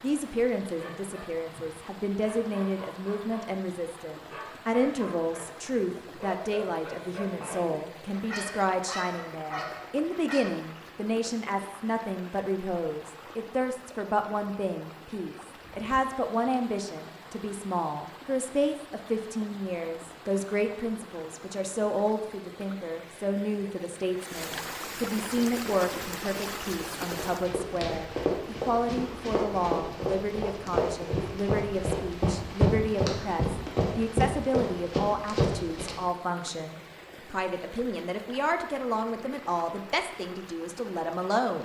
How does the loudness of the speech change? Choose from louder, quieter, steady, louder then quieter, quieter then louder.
steady.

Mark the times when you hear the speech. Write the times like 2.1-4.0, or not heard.
0.0-41.6.